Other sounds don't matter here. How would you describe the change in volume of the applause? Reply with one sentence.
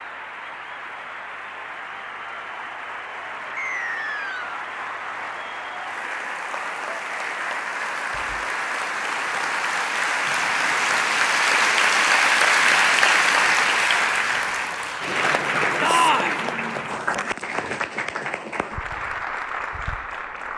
The loudness of the applause goes up, then down.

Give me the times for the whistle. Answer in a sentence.
You can hear the whistle from 3.5 to 4.5 s.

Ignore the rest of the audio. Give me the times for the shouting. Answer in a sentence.
You can hear the shouting from 15.8 to 16.4 s.